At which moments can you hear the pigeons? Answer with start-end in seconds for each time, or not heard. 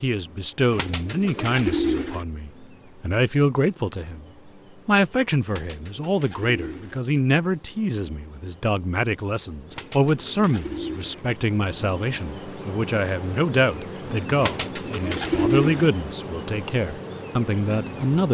0.7-2.2, 5.5-7.0, 9.7-11.2, 14.3-15.9.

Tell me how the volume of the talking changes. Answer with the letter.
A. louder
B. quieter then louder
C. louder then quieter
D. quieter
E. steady
E.